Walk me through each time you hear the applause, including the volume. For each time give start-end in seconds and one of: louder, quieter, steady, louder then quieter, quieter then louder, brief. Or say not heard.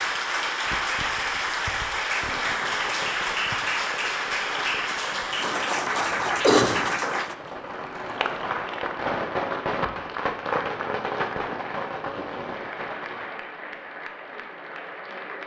0.0-15.4 quieter.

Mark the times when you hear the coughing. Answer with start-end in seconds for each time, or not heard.
6.0-6.8.